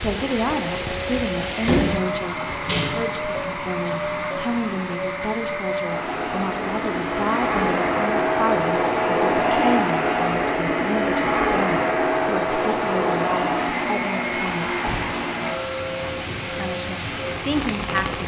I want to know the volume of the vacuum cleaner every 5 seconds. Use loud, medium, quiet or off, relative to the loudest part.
medium, loud, loud, medium.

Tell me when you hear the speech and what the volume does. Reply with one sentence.
The speech can be heard from 0.0 to 14.7 s, at a steady volume; and briefly from 16.4 to 18.2 s.